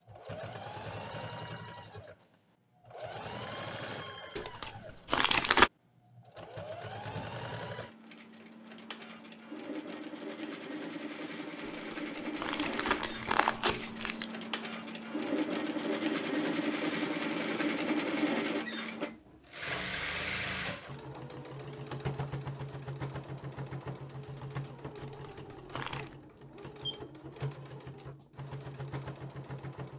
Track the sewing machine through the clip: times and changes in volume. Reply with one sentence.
The sewing machine can be heard from 0.1 to 29.9 s, getting louder then quieter.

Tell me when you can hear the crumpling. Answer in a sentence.
The crumpling can be heard from 4.3 to 5.7 s, from 11.6 to 14.3 s and from 24.9 to 26.1 s.